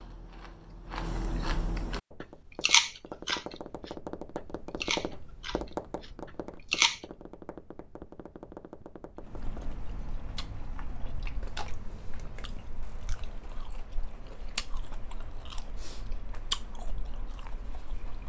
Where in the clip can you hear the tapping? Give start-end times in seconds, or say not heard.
1.9-9.8.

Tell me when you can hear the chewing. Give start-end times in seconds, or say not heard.
0.0-7.0, 9.2-18.2.